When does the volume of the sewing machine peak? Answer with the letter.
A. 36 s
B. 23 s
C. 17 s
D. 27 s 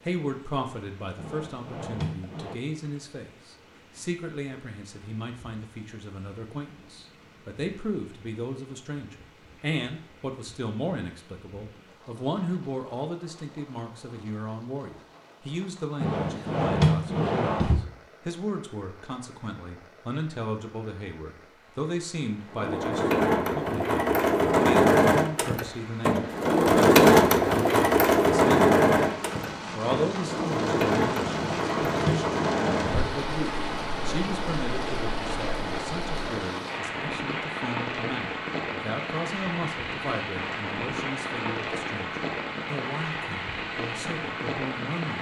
D.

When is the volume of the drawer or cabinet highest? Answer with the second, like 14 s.
17 s.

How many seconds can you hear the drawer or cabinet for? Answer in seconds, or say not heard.
5 s.